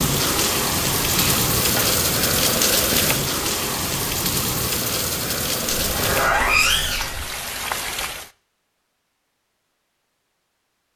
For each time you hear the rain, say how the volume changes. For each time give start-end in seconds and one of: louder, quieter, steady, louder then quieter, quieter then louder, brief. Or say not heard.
0.0-8.3 quieter.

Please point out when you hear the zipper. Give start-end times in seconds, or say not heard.
1.1-1.9, 5.7-7.2.